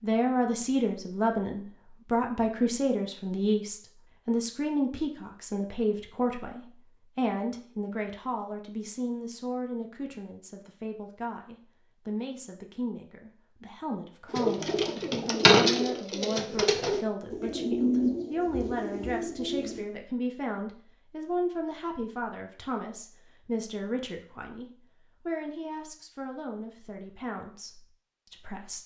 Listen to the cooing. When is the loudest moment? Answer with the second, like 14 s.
16 s.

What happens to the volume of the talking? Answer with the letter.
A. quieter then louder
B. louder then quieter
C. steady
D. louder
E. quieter
E.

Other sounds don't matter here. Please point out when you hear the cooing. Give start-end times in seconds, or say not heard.
14.3-19.9.